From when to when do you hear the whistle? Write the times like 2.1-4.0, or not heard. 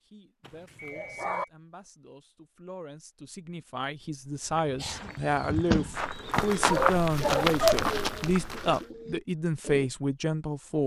0.8-1.5.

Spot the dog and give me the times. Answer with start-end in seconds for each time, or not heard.
0.4-1.4, 5.5-7.8.